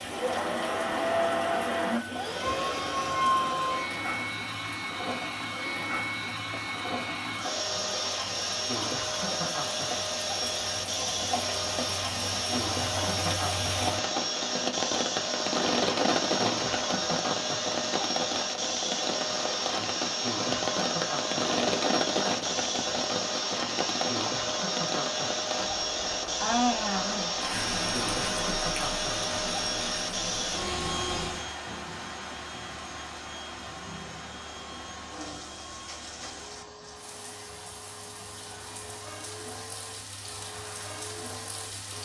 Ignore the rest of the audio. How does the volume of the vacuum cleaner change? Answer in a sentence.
The loudness of the vacuum cleaner goes down.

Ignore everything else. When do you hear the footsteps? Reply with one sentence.
You can't hear the footsteps here.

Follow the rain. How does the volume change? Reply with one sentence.
The loudness of the rain goes up, then down.